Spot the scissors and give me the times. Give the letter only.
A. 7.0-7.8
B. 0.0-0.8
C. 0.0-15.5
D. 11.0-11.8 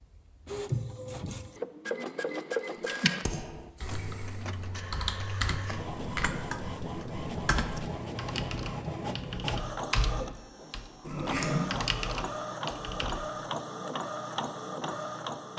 D.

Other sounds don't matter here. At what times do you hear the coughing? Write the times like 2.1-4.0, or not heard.
not heard.